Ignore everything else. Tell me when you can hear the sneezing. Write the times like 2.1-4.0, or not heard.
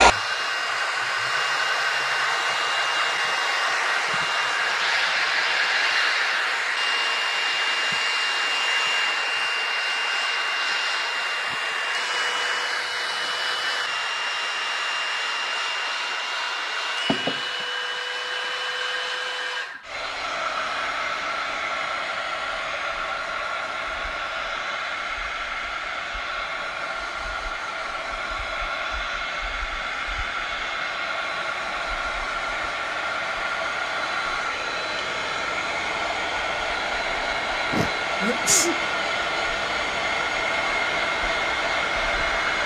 37.7-38.8.